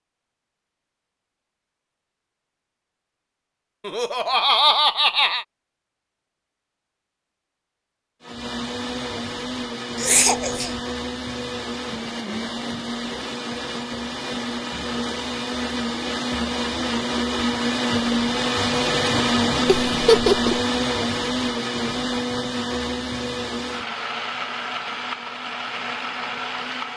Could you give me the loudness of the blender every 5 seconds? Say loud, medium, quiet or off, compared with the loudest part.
off, medium, medium, loud, loud, medium.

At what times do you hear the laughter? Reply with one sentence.
The laughter can be heard from 3.9 to 5.5 s, from 9.9 to 10.8 s and from 19.9 to 20.6 s.